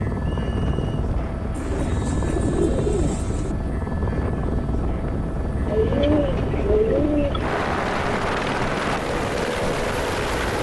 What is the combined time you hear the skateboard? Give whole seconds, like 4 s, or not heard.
not heard.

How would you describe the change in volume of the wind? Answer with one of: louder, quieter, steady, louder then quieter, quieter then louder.
steady.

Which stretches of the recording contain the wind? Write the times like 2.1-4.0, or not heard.
0.0-10.5.